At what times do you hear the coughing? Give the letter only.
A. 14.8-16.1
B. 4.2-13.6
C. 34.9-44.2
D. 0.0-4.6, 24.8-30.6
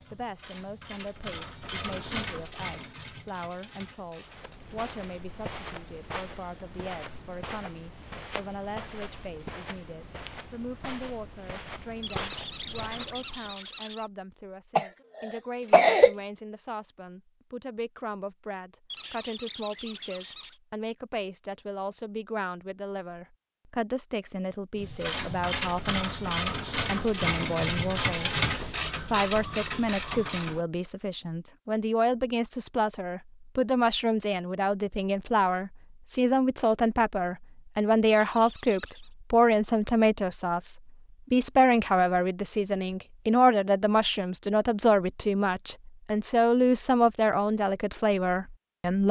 A.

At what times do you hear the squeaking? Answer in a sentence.
You can hear the squeaking from 12.0 to 14.1 s, from 18.9 to 20.6 s and from 38.0 to 39.1 s.